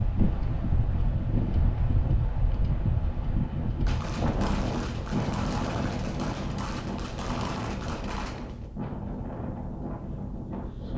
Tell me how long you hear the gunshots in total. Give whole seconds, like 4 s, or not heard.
5 s.